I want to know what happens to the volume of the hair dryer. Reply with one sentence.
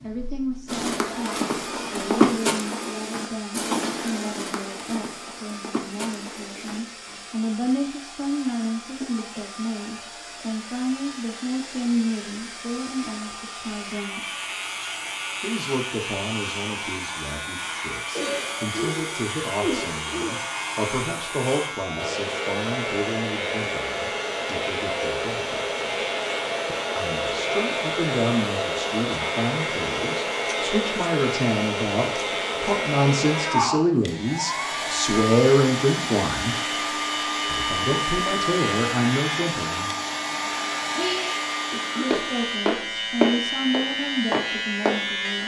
The volume of the hair dryer goes up.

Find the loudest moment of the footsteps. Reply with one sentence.
The loudest moment of the footsteps is at 2 seconds.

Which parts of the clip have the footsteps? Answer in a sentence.
The footsteps can be heard from 0.7 to 7.2 s and from 42.1 to 45.4 s.